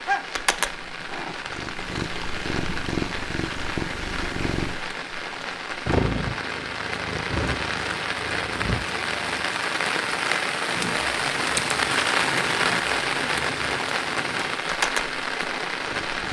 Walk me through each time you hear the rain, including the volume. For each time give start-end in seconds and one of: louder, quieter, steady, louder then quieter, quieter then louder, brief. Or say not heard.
0.0-16.2 louder.